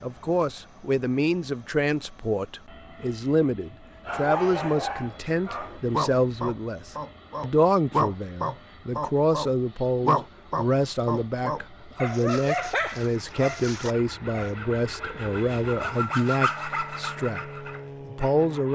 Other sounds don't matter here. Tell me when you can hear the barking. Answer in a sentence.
You can hear the barking from 4.0 to 14.5 s.